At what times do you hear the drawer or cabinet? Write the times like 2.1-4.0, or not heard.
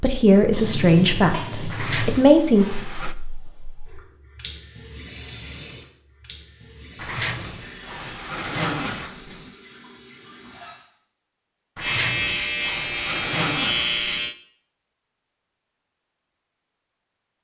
1.7-3.1, 7.0-9.6, 11.8-14.2.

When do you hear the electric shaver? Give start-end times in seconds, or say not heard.
11.8-14.3.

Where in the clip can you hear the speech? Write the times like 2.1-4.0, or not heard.
0.0-2.6.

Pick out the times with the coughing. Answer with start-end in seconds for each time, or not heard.
not heard.